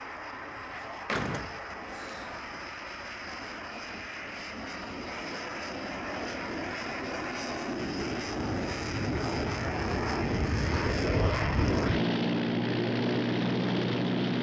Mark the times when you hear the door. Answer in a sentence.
You can hear the door from 0.6 to 2.5 s.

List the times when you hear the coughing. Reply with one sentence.
The coughing can't be heard in this clip.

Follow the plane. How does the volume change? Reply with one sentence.
The loudness of the plane goes up.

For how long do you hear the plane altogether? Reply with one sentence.
The plane can be heard for 14 seconds in total.